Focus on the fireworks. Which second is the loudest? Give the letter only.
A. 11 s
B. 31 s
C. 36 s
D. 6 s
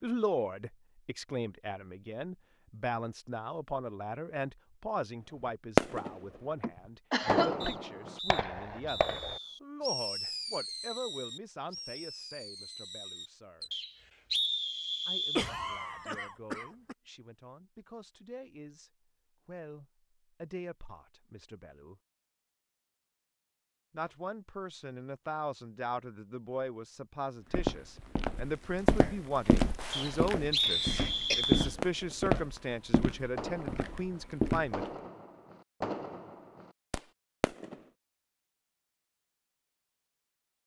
D.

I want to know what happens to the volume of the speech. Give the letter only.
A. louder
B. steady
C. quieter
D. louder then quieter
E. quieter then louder
E.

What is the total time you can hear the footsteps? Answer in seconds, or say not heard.
7 s.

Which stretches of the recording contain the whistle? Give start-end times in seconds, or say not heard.
7.6-9.6, 13.7-15.5, 29.9-31.8.